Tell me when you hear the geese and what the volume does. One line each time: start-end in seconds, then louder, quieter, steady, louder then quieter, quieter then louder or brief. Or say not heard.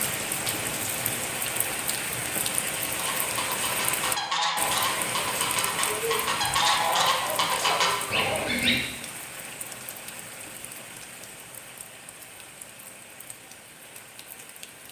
2.9-8.8 louder.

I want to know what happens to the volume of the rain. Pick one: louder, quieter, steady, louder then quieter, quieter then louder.
quieter.